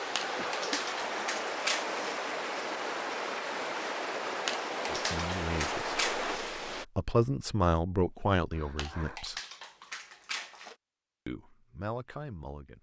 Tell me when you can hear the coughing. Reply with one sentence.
The coughing can be heard from 0.2 to 0.8 s and from 8.5 to 9.2 s.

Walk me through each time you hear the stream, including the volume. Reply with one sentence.
You can hear the stream from 0.0 to 6.8 s, at a steady volume.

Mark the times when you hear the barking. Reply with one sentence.
You can hear the barking from 0.1 to 2.2 s, from 4.5 to 6.5 s and from 8.8 to 10.8 s.